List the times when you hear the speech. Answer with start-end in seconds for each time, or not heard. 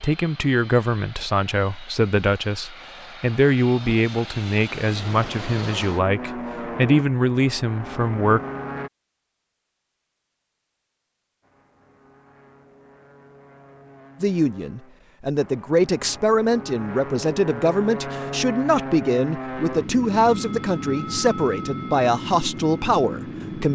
0.0-8.4, 14.2-23.7.